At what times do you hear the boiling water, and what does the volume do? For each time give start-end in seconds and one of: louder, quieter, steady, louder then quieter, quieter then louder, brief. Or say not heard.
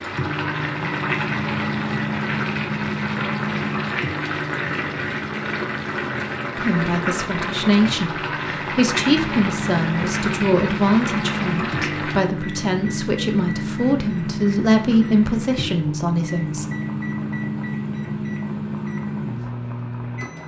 0.0-20.4 quieter.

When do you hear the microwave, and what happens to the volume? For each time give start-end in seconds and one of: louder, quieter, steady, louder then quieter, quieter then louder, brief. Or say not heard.
0.0-20.4 quieter then louder.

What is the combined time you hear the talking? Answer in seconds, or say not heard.
10 s.